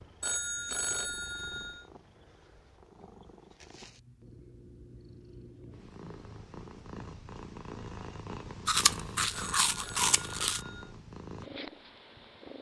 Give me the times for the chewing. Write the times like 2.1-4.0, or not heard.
8.7-10.6.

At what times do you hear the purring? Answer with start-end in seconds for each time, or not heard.
0.0-12.5.